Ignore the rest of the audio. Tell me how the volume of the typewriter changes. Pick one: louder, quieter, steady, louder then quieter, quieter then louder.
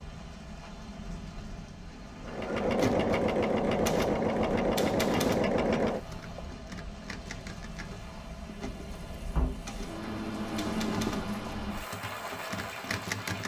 quieter then louder.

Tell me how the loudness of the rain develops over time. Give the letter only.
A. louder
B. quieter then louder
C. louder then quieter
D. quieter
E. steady
A.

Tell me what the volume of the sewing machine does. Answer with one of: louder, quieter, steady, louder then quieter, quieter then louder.
steady.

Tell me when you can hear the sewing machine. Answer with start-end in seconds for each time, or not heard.
2.2-6.2.